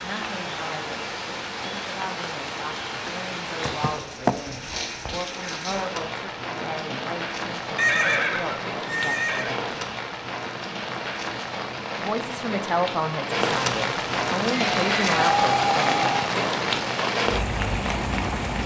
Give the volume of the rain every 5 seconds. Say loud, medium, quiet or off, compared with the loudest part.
medium, medium, loud, loud.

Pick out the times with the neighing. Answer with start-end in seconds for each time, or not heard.
3.6-4.3, 7.8-9.6, 14.5-16.3.